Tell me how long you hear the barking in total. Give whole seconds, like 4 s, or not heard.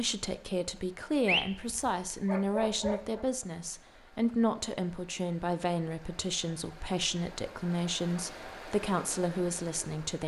2 s.